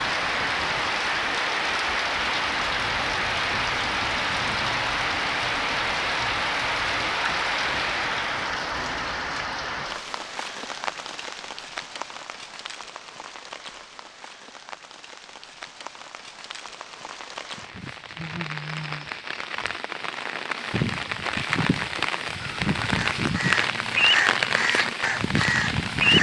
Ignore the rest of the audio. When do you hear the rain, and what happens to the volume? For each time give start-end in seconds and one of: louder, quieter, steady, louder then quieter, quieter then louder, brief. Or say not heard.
0.0-26.1 quieter then louder.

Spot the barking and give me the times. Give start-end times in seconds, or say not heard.
not heard.